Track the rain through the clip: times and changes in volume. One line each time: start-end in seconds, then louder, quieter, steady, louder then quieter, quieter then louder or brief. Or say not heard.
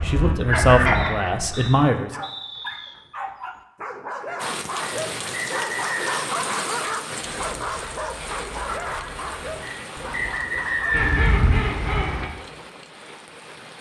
4.3-13.7 quieter.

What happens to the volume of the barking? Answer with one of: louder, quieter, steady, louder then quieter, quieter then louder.
louder then quieter.